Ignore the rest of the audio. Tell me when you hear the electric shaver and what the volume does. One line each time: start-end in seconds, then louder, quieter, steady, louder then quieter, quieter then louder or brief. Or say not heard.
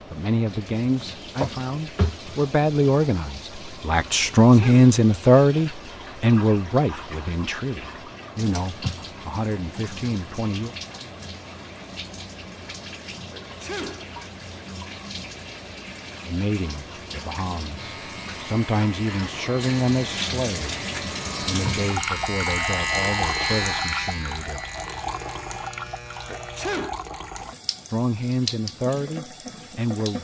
17.8-26.9 louder then quieter.